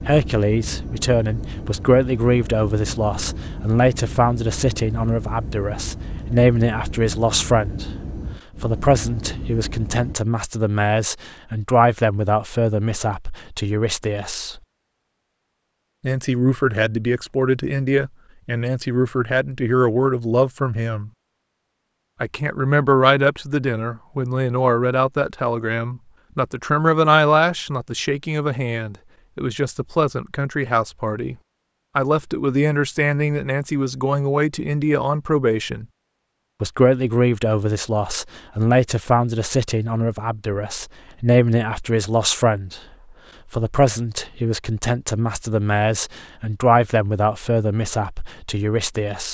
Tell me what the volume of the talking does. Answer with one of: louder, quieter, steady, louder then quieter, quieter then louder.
steady.